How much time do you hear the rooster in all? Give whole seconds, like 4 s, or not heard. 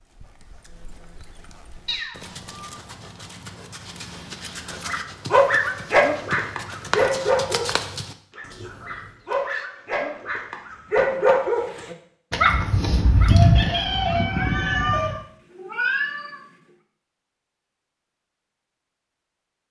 3 s.